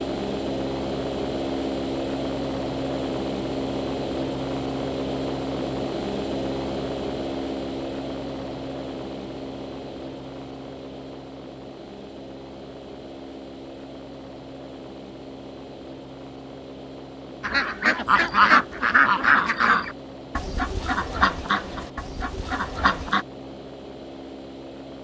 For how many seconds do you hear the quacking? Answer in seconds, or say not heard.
6 s.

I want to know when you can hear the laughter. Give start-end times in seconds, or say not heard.
not heard.